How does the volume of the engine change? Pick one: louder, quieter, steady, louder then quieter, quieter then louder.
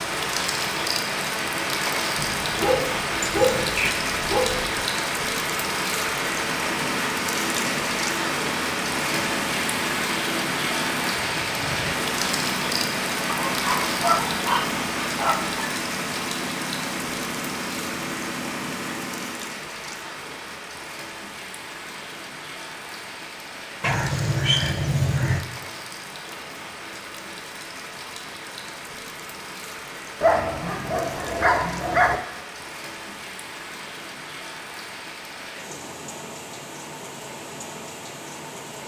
steady.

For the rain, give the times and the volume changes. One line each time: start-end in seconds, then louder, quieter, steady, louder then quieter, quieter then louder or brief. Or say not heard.
0.0-38.8 quieter.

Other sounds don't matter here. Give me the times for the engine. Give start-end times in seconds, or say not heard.
6.3-19.6.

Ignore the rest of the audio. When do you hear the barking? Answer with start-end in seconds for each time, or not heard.
2.1-4.8, 13.5-15.7, 23.8-25.4, 30.2-32.2.